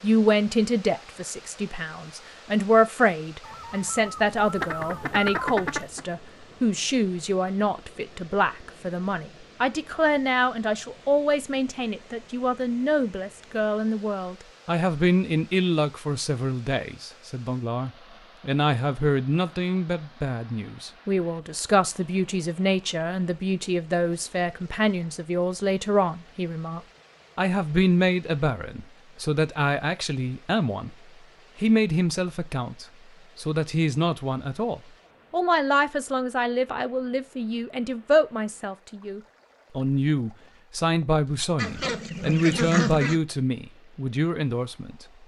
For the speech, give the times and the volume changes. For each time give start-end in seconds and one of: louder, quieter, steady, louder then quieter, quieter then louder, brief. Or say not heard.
0.0-30.9 steady
31.6-45.0 steady.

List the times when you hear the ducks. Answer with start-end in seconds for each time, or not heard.
3.4-6.0, 41.5-43.2.